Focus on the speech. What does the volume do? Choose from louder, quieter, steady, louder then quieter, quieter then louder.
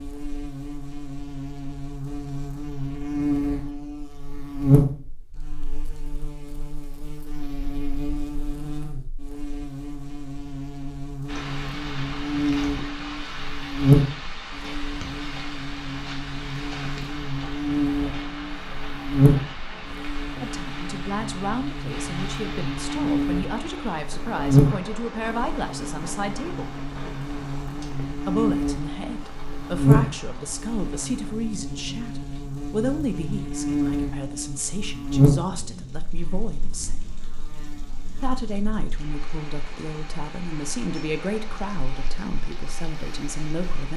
steady.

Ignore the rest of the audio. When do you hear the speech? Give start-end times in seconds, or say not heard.
20.4-26.8, 28.2-37.0, 38.2-43.9.